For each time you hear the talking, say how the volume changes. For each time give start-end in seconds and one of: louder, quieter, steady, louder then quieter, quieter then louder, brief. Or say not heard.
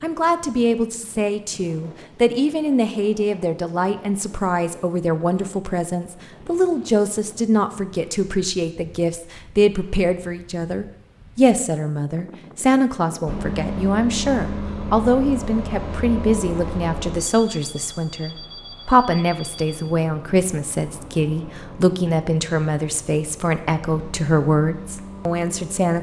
0.0-25.9 steady.